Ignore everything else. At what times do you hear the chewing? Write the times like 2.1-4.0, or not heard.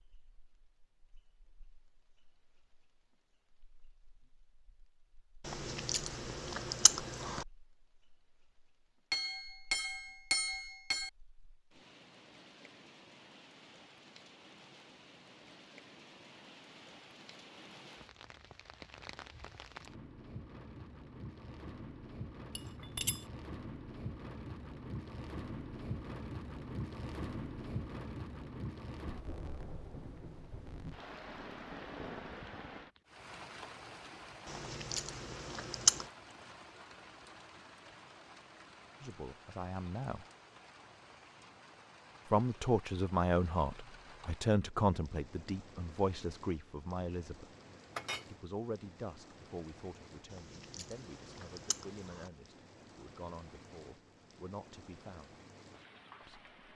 5.5-7.5, 34.5-36.0, 50.3-52.3.